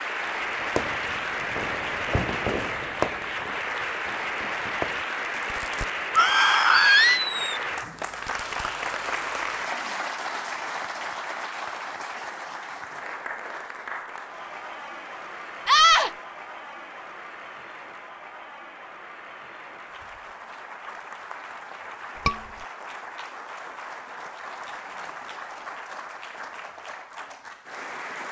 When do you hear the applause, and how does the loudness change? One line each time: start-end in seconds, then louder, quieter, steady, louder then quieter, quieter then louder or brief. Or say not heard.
0.0-28.2 quieter.